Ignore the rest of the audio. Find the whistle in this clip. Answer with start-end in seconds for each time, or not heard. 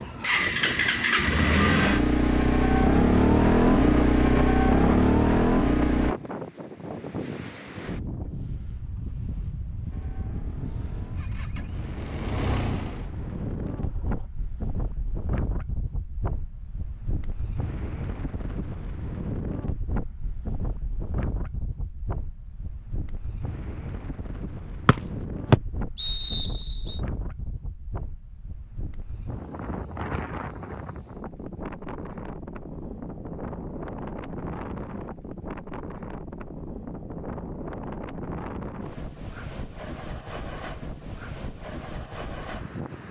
24.9-27.0.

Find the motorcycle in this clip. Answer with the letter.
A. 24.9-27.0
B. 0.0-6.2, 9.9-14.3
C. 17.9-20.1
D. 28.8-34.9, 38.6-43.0
B.